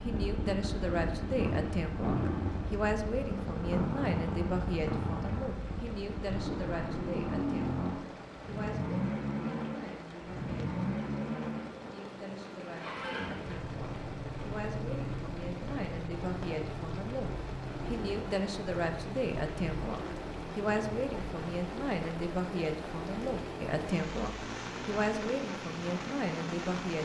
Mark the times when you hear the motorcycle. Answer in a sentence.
You can hear the motorcycle from 0.0 to 27.0 s.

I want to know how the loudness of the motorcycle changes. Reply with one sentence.
The volume of the motorcycle goes down.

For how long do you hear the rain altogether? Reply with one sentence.
You can hear the rain for 27 seconds altogether.